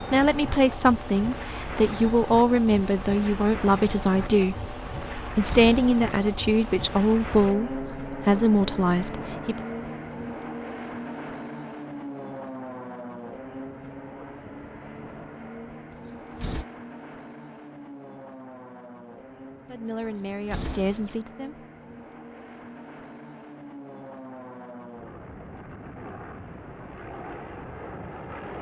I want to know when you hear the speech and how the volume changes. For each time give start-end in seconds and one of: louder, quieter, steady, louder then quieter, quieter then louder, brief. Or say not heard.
0.0-9.6 steady
19.6-21.6 brief.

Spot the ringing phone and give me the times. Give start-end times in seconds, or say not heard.
not heard.